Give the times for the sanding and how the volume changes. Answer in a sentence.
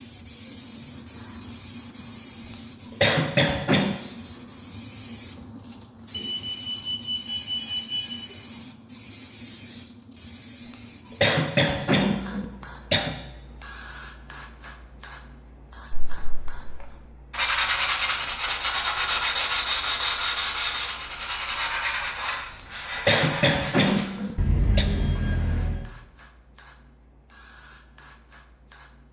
You can hear the sanding from 17.3 to 24.1 s, getting quieter.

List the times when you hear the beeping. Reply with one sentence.
You can hear the beeping from 6.1 to 8.2 s, from 15.9 to 16.9 s and from 24.4 to 25.9 s.